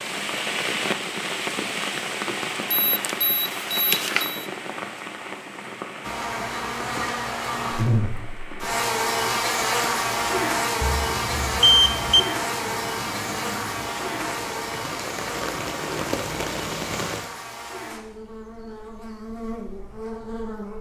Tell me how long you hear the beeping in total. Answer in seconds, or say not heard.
3 s.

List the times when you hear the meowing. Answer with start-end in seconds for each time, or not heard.
not heard.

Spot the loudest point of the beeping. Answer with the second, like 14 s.
12 s.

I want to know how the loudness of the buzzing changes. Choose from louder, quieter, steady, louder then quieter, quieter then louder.
quieter.